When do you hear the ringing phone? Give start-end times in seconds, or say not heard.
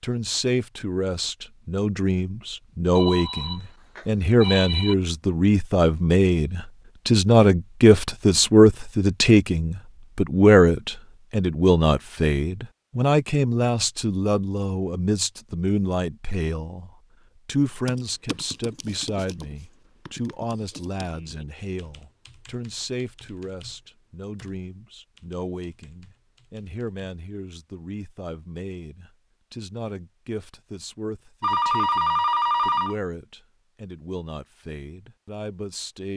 3.0-5.0, 31.4-33.0.